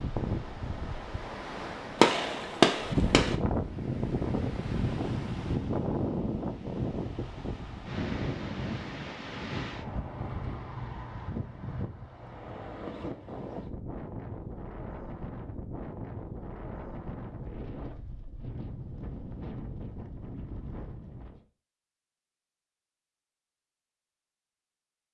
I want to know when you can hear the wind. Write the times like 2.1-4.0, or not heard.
0.0-21.4.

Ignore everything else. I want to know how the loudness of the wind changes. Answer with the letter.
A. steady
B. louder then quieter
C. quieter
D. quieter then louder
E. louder
C.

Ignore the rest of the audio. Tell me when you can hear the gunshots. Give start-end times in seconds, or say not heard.
2.0-3.4.